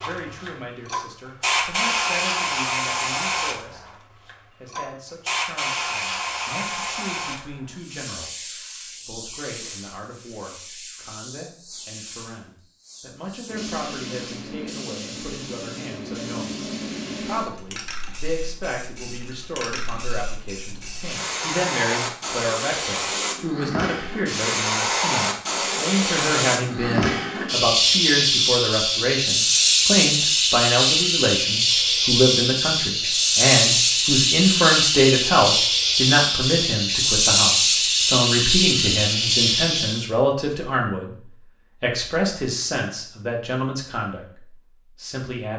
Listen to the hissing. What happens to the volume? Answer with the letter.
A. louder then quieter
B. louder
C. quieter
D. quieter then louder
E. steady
D.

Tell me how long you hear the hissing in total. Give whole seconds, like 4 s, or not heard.
40 s.